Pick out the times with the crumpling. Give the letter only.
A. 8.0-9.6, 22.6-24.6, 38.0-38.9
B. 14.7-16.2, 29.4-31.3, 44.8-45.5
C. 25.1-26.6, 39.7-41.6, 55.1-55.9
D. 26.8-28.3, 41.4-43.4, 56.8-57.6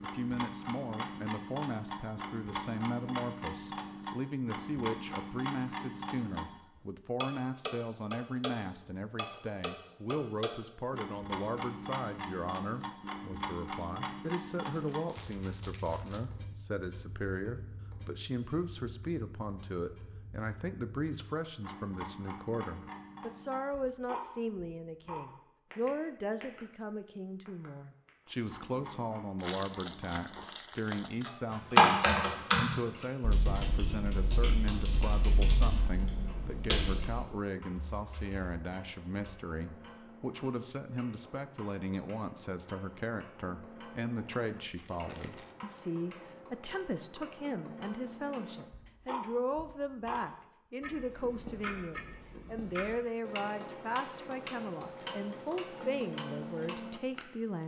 B.